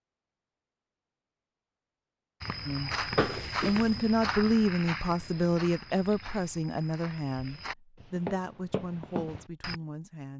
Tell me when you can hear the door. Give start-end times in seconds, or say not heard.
3.1-4.0.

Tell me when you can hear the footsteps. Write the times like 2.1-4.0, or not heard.
2.4-9.8.